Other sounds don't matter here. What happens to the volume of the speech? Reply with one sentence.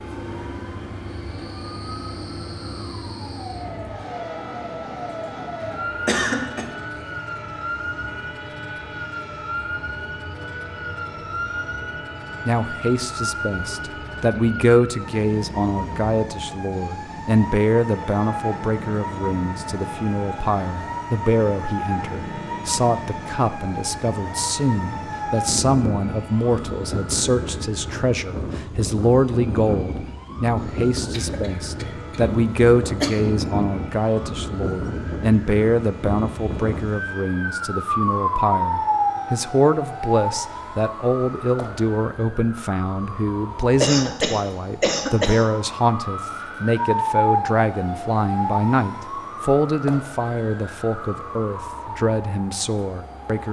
The loudness of the speech stays about the same.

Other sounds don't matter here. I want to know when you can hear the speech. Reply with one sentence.
The speech can be heard from 12.4 to 53.4 s.